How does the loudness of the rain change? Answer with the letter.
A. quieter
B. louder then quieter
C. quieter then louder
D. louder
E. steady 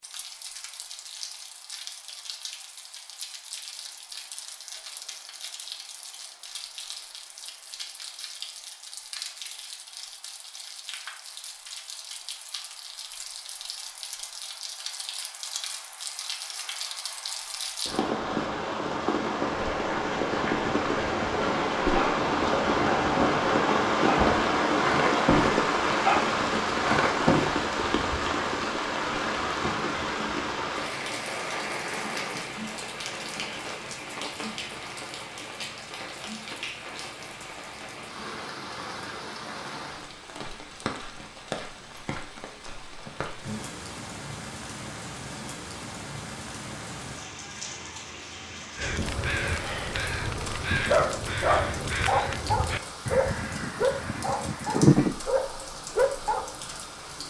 B.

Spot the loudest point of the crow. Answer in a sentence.
The loudest moment of the crow is at 55 seconds.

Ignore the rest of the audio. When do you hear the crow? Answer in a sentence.
The crow can be heard from 48.8 to 55.1 s.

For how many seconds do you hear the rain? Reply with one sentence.
The rain can be heard for 57 seconds in total.